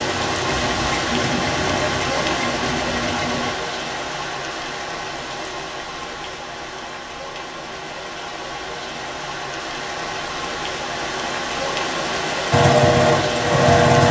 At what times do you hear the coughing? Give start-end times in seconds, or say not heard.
not heard.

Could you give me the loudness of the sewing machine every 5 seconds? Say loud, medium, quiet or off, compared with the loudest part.
medium, off, loud.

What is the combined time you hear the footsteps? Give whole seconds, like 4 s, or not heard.
not heard.